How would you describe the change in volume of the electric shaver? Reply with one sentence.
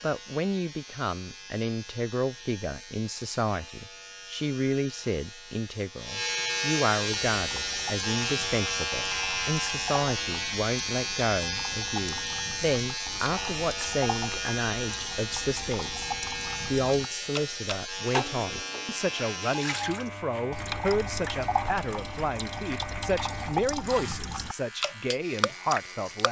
The volume of the electric shaver goes up, then down.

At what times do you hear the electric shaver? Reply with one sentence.
The electric shaver can be heard from 0.0 to 26.2 s.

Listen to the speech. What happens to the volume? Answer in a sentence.
The loudness of the speech stays about the same.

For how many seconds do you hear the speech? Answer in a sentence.
You can hear the speech for 26 seconds altogether.